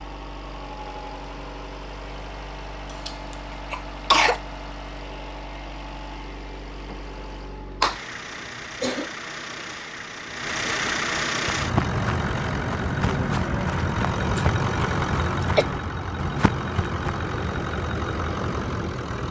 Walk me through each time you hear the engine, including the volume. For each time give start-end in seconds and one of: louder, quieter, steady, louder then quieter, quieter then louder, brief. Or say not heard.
0.0-19.2 louder.